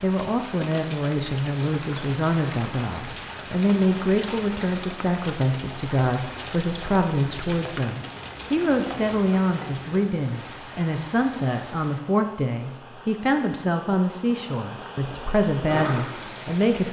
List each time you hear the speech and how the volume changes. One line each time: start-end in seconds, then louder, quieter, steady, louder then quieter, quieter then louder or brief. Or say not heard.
0.0-16.8 steady.